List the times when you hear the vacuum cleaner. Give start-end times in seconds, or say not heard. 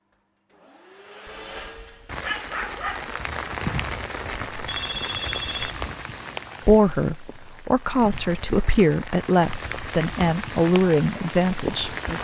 0.0-2.1.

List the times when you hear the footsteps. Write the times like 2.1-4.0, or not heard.
not heard.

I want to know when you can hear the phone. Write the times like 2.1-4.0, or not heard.
4.2-5.8.